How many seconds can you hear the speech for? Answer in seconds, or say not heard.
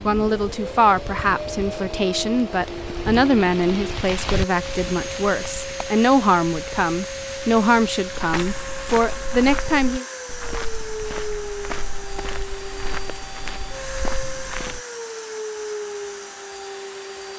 10 s.